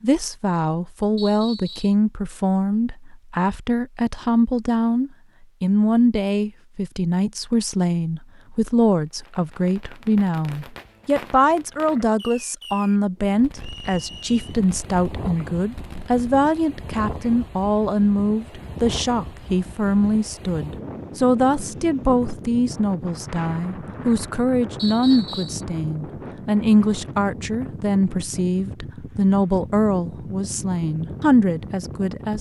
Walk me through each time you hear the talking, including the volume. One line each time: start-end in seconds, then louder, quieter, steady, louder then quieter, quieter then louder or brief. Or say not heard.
0.0-32.3 steady.